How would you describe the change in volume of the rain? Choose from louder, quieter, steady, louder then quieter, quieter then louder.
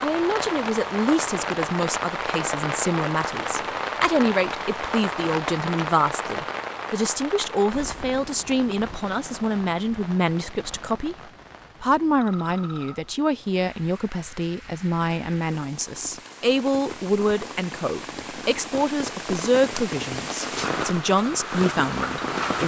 quieter then louder.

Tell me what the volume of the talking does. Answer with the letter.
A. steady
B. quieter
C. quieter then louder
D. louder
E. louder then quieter
A.